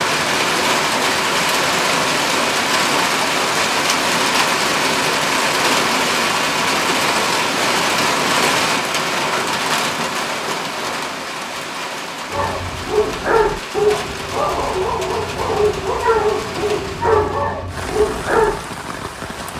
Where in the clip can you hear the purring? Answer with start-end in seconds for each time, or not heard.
not heard.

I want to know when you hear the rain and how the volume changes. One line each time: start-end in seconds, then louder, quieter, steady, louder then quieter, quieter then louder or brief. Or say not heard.
0.0-19.5 quieter.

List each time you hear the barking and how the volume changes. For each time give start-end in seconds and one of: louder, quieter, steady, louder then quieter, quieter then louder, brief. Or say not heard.
12.3-18.6 steady.